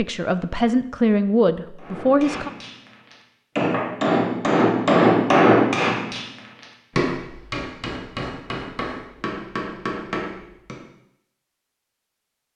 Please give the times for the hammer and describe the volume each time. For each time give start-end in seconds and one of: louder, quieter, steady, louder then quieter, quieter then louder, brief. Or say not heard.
1.8-10.8 louder then quieter.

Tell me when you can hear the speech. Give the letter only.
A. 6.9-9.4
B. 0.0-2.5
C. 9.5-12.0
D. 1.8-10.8
B.